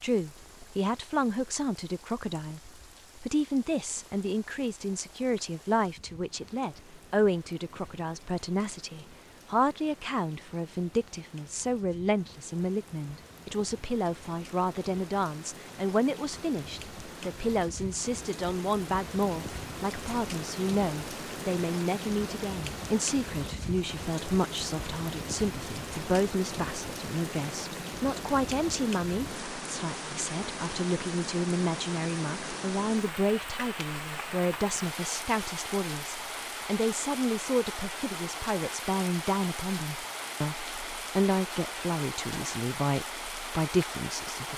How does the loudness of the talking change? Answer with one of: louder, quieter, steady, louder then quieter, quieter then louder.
steady.